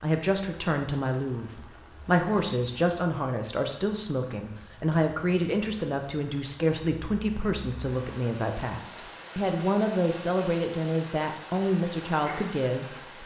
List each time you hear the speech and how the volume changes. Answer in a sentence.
The speech can be heard from 0.0 to 13.2 s, at a steady volume.